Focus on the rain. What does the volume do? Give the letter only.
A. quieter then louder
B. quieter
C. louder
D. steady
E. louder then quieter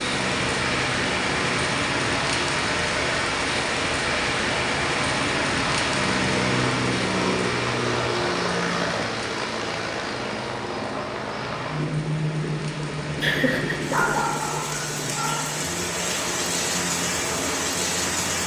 A.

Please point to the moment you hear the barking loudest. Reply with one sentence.
The volume of the barking peaks at 14 seconds.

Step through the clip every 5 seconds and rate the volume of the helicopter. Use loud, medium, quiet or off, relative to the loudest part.
medium, loud, loud, medium.